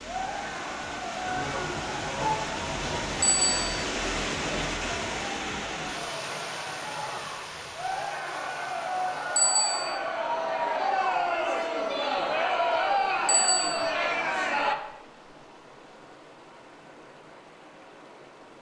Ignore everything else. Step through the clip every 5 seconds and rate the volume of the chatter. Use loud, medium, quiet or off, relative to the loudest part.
medium, medium, loud, off.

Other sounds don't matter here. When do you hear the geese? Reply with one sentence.
You can hear the geese from 1.2 to 3.0 s.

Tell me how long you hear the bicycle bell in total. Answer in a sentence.
You can hear the bicycle bell for 2 seconds altogether.